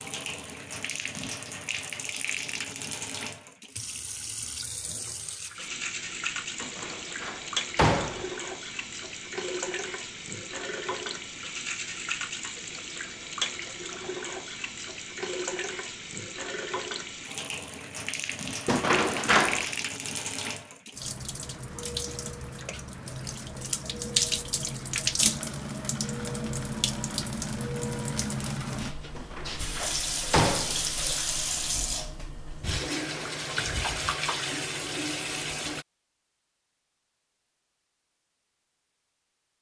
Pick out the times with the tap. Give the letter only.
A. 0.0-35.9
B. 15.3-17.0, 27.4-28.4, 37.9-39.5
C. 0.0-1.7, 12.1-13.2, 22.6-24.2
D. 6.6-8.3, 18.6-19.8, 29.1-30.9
A.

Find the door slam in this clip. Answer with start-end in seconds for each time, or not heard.
6.6-8.3, 18.6-19.8, 29.1-30.9.